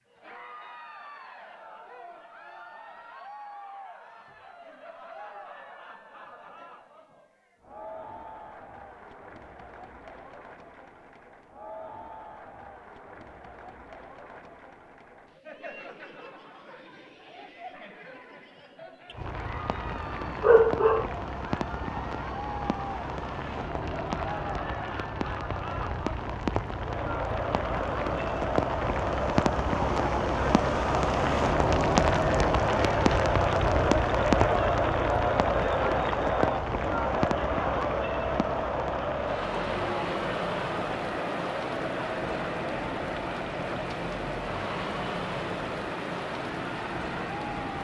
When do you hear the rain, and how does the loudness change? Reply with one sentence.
The rain can be heard from 19.1 to 47.7 s, getting louder then quieter.